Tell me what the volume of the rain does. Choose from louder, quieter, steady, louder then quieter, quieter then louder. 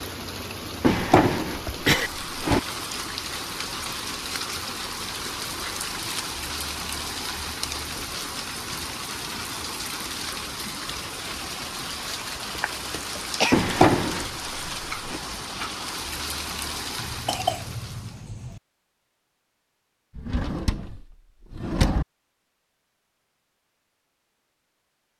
steady.